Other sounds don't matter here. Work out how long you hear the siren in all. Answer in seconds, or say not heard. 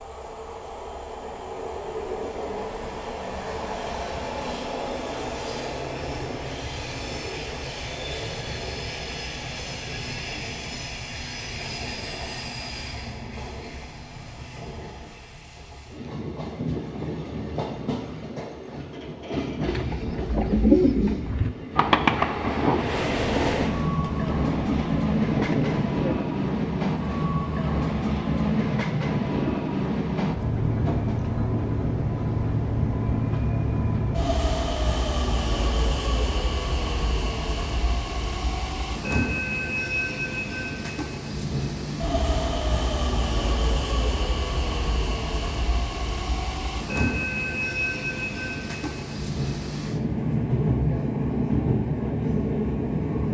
not heard.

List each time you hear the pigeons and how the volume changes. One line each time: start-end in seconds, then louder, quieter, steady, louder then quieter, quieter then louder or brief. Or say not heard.
19.6-25.9 quieter.